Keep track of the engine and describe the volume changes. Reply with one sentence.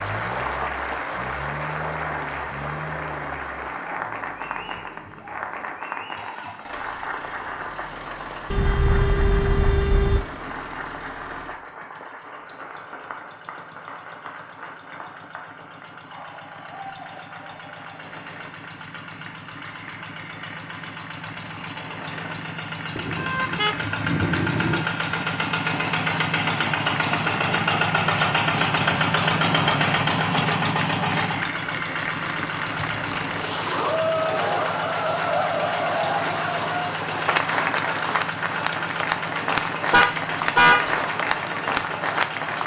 The loudness of the engine goes up, then down.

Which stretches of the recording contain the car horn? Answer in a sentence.
You can hear the car horn from 8.5 to 10.2 s, from 22.9 to 24.9 s and from 39.9 to 40.9 s.